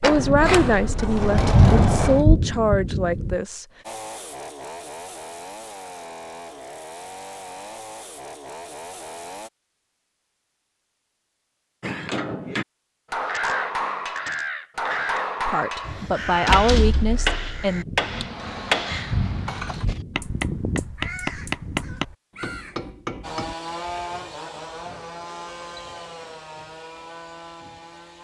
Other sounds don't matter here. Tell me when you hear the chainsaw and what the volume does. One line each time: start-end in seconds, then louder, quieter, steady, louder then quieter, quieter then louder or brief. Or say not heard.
3.8-9.5 steady
23.2-28.2 quieter.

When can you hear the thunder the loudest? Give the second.
2 s.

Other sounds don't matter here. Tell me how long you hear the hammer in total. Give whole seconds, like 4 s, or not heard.
12 s.